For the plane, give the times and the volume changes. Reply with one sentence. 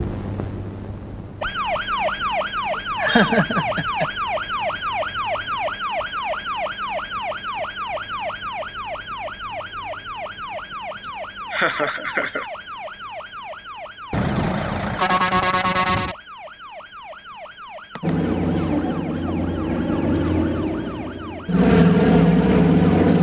The plane can be heard from 18.0 to 23.1 s, getting louder.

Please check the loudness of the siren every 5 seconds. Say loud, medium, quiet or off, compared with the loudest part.
loud, loud, medium, quiet, quiet.